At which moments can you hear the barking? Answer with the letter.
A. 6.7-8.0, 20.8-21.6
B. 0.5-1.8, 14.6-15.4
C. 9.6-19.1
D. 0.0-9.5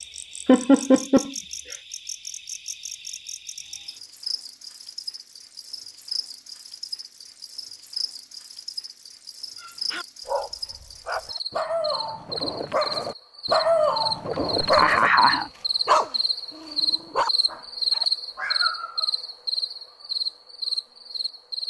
C.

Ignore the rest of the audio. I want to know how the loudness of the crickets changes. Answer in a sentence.
The volume of the crickets goes up.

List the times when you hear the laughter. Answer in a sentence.
You can hear the laughter from 0.5 to 1.8 s and from 14.6 to 15.4 s.